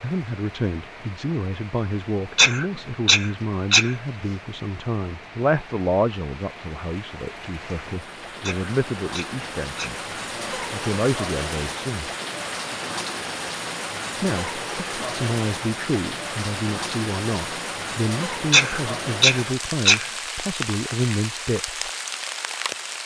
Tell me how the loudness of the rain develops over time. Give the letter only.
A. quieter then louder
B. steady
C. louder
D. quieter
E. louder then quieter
C.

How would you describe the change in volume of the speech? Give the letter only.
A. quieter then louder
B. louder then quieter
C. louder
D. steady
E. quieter
D.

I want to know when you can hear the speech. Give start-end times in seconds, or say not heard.
0.0-12.1, 14.2-21.9.